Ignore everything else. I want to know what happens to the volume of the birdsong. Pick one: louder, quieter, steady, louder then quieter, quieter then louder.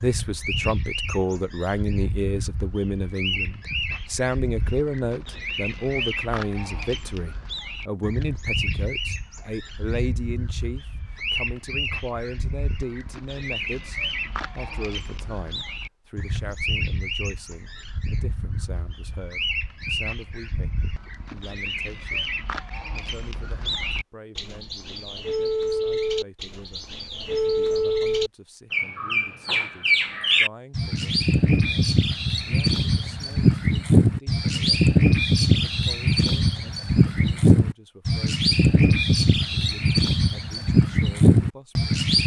louder.